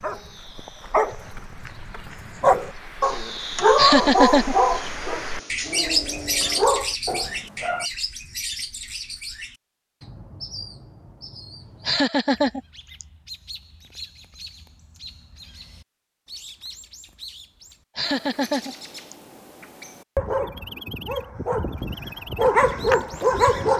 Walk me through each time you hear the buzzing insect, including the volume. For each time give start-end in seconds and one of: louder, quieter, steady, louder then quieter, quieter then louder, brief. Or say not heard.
not heard.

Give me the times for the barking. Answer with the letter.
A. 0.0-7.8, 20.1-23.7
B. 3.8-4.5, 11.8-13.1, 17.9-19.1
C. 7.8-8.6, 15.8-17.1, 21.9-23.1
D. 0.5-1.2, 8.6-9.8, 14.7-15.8
A.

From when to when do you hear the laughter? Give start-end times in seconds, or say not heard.
3.8-4.5, 11.8-13.1, 17.9-19.1.